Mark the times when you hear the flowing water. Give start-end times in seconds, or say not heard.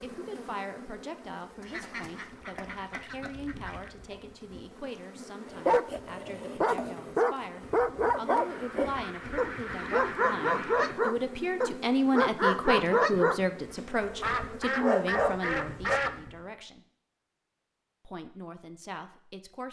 not heard.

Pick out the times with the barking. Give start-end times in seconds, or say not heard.
5.5-16.0.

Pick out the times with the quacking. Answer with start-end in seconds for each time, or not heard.
1.6-3.9, 8.3-10.9, 14.2-16.1.